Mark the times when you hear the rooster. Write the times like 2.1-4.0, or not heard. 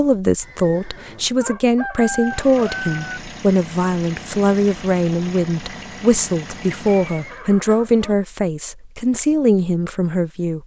1.4-3.2.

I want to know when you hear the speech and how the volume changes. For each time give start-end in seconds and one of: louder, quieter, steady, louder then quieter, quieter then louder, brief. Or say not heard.
0.0-10.6 steady.